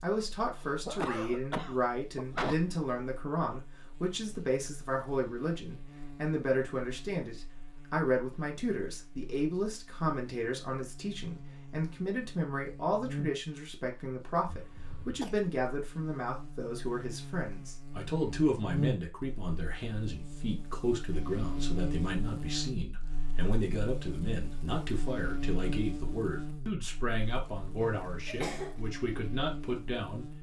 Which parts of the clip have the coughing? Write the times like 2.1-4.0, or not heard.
0.6-2.5, 14.4-15.3, 27.8-28.8.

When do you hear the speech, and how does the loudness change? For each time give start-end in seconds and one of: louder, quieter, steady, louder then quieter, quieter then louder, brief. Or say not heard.
0.0-30.3 steady.